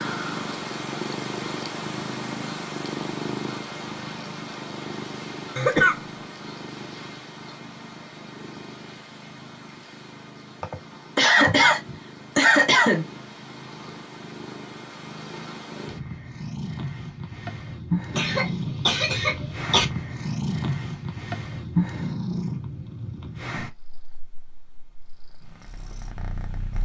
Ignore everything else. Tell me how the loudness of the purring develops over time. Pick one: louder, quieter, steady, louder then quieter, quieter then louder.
quieter then louder.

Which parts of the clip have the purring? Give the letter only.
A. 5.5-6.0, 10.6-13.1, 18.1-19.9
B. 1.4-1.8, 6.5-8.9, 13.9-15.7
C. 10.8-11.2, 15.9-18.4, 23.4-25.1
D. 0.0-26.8
D.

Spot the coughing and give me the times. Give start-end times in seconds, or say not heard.
5.5-6.0, 10.6-13.1, 18.1-19.9.